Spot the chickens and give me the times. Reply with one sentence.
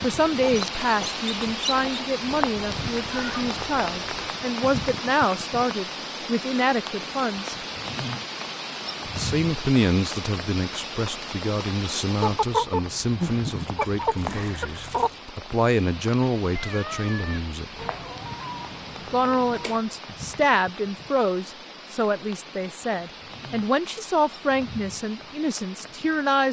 The chickens can be heard from 0.4 to 2.1 s, from 12.2 to 15.1 s and from 17.8 to 19.8 s.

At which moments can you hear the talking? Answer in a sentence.
The talking can be heard from 0.0 to 7.5 s, from 9.1 to 17.7 s and from 19.1 to 26.4 s.